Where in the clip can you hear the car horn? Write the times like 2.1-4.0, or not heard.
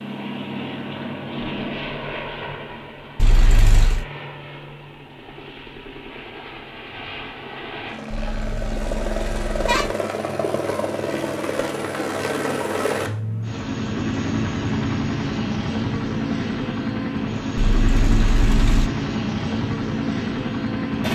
3.1-4.0, 8.1-9.9, 17.6-18.9.